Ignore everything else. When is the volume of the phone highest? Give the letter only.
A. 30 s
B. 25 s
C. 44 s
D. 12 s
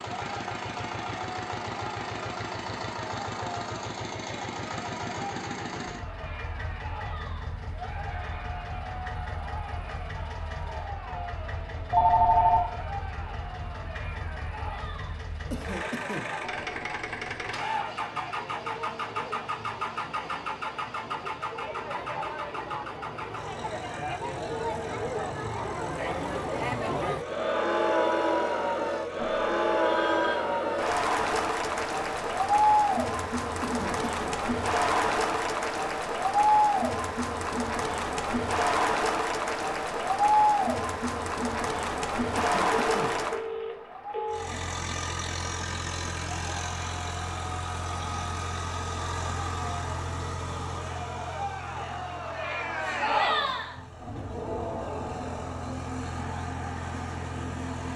D.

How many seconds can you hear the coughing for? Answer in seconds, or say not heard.
2 s.